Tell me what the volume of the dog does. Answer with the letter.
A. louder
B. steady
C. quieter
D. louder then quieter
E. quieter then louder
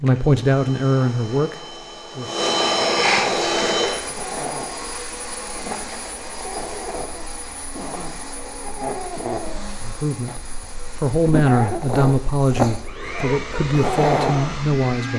A.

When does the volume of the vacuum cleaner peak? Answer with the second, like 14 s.
3 s.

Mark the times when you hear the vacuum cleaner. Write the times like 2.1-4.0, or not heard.
0.0-15.1.